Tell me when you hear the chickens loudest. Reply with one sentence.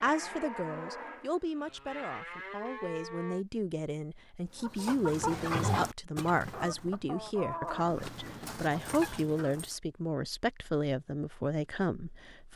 The loudest moment of the chickens is at 6 seconds.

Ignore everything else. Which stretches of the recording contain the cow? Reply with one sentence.
The cow can be heard from 0.0 to 3.5 s.